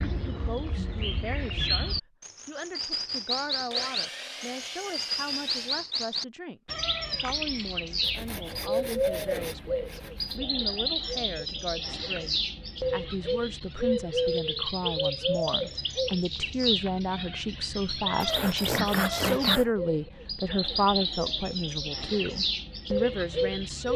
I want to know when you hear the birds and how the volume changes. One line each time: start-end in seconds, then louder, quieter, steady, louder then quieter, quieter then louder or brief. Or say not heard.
0.0-23.9 steady.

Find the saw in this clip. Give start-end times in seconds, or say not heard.
3.7-5.8, 8.0-10.4, 18.2-19.7.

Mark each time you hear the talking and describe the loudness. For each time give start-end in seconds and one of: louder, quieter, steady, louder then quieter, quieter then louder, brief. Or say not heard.
0.0-23.9 louder.